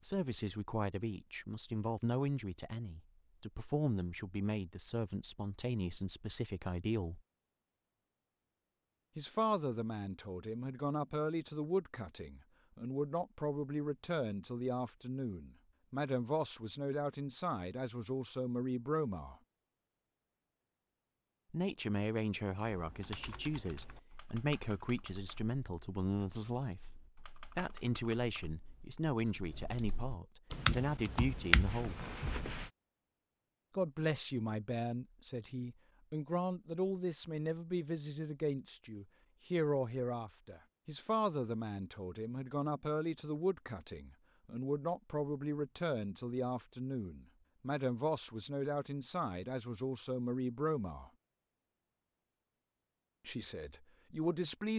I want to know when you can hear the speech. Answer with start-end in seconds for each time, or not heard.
0.0-7.2, 9.2-19.4, 21.5-26.8, 27.6-32.0, 33.8-51.1, 53.2-54.7.